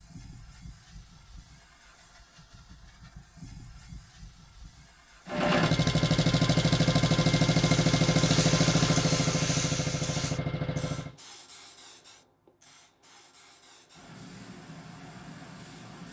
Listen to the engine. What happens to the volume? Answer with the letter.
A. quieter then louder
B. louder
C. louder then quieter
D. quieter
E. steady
D.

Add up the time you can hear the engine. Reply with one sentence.
You can hear the engine for 6 seconds altogether.